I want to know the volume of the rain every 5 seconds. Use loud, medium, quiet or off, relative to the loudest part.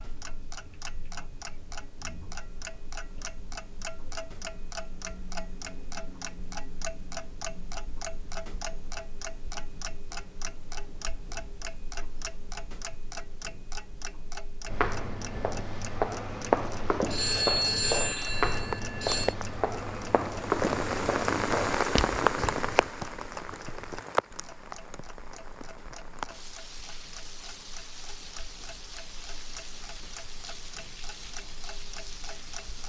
off, off, off, medium, loud, quiet, quiet.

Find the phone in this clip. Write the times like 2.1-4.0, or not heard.
17.1-19.4.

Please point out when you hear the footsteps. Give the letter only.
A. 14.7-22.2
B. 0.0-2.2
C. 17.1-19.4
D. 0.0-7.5
A.